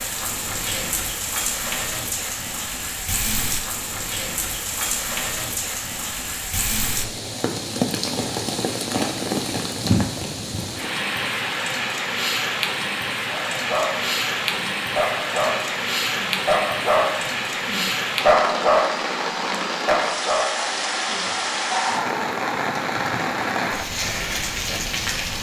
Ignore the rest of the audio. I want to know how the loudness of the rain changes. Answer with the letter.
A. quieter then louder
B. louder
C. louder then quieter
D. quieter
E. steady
E.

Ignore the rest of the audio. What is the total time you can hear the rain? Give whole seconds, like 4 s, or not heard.
25 s.